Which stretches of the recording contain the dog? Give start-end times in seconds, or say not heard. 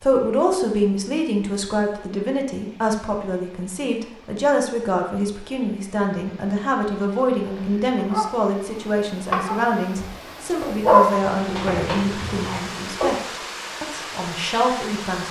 7.3-13.1.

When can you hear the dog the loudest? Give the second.
11 s.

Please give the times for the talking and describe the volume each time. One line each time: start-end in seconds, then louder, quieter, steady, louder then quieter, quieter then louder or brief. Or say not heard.
0.0-15.2 steady.